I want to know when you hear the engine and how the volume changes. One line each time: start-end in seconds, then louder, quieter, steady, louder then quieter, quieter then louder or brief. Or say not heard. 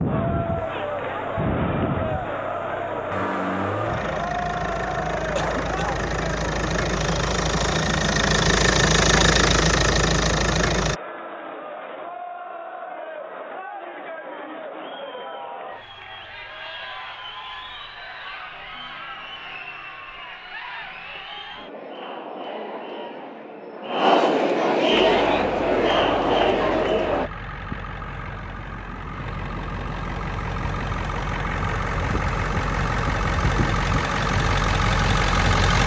0.0-11.0 louder
25.1-35.8 louder.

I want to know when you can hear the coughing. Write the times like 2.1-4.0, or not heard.
5.3-6.0.